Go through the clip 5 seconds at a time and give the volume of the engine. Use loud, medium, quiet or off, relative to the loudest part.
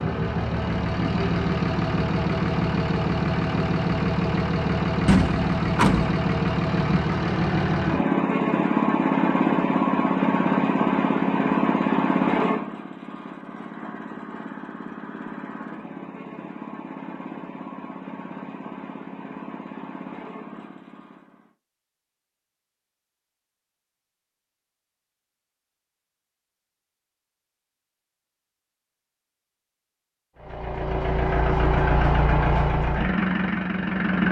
loud, loud, loud, quiet, quiet, off, loud.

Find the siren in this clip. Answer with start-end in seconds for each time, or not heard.
not heard.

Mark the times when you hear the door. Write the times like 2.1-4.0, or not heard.
5.0-6.2.